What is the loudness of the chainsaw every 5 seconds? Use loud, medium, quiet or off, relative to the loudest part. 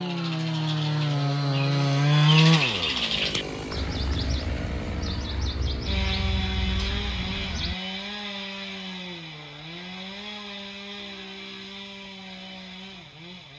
loud, medium, quiet.